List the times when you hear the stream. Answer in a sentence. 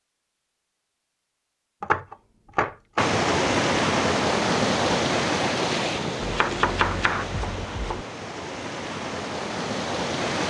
The stream can be heard from 3.0 to 10.4 s.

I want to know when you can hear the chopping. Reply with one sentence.
You can hear the chopping from 1.8 to 3.1 s and from 6.2 to 8.1 s.